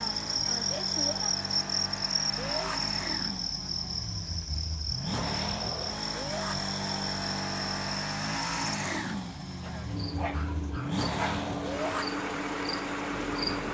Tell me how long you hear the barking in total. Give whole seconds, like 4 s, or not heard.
2 s.